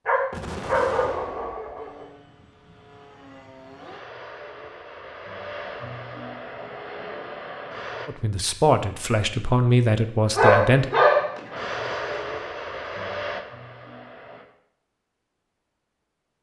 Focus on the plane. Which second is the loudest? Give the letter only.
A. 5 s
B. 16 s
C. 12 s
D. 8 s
C.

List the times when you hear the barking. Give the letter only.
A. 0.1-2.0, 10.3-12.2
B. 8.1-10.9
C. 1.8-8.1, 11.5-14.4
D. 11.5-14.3
A.